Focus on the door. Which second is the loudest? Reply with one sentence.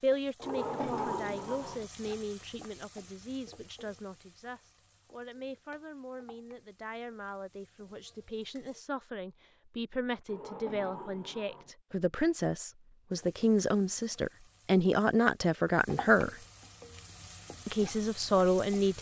The volume of the door peaks at 1 second.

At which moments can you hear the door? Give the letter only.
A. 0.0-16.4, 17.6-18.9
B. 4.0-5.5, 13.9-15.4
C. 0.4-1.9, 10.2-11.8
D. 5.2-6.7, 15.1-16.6
C.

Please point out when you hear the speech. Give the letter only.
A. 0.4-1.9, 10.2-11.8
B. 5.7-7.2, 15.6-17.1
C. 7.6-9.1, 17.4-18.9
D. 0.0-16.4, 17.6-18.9
D.